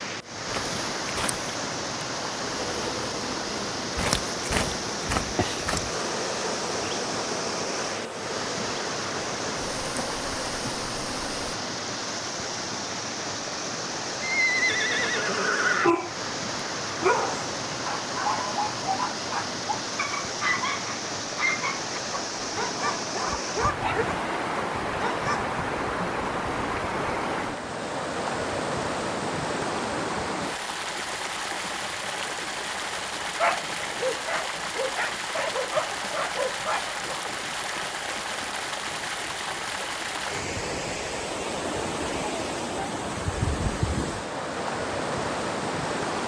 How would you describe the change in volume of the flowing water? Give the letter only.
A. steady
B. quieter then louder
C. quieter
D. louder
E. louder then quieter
A.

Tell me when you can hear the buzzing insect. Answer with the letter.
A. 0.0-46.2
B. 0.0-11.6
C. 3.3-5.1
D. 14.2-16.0
B.